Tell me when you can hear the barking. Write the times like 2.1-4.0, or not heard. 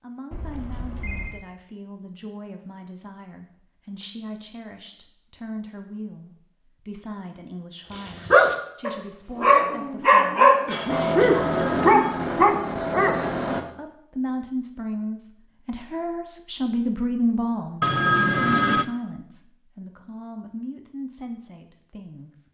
7.9-13.6.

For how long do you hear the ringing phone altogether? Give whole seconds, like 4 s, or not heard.
3 s.